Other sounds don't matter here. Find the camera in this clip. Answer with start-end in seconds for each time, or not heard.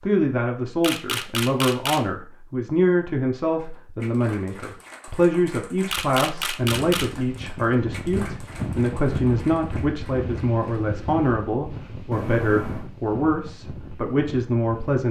0.8-2.0, 5.9-7.1, 12.1-12.9.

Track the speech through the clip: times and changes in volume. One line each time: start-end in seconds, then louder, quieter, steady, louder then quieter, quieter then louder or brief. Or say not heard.
0.0-15.0 steady.